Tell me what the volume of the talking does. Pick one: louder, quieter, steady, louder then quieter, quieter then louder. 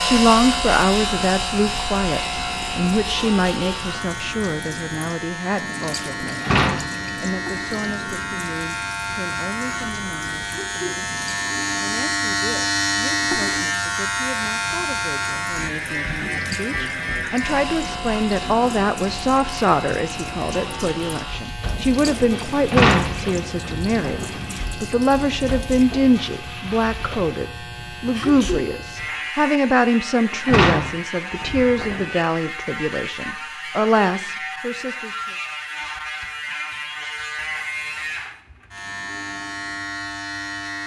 quieter then louder.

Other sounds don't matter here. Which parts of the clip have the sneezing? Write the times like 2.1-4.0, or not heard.
10.4-10.9, 28.1-28.6.